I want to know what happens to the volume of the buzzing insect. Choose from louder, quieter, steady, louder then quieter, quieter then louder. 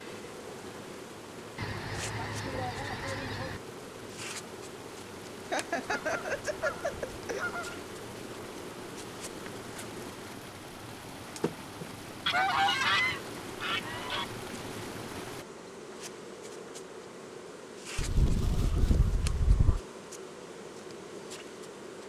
steady.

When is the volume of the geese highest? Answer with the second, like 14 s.
13 s.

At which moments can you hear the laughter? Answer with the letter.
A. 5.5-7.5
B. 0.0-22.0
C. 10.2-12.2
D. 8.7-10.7
A.